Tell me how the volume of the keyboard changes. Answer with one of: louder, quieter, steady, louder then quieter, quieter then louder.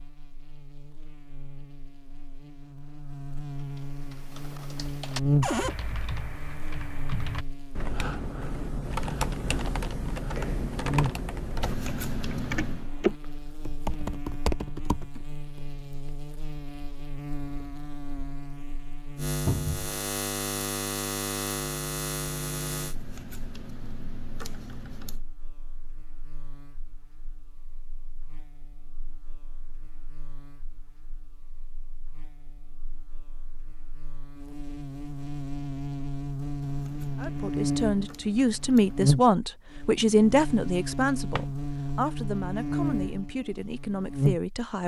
louder.